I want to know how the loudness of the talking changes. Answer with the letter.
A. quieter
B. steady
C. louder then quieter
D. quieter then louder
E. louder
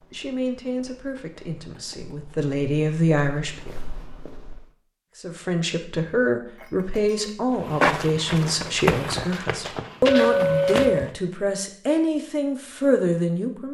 E.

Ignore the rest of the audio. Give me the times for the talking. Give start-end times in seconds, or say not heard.
0.1-3.8, 5.2-13.7.